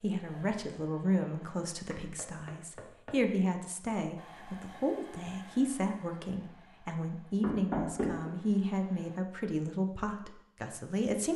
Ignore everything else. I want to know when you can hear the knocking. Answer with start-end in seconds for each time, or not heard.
1.9-3.2, 7.4-8.3.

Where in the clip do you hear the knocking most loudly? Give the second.
8 s.